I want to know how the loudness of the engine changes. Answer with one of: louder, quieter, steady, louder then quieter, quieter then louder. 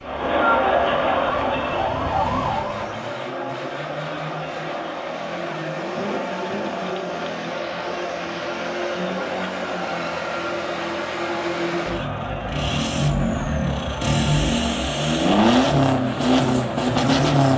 louder.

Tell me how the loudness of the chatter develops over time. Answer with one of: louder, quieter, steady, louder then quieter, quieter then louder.
quieter.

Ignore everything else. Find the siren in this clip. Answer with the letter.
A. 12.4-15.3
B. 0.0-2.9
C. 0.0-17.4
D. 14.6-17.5
B.